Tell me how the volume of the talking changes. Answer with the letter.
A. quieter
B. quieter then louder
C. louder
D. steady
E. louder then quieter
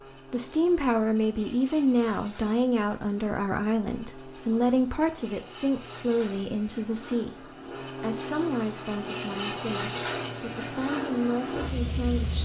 A.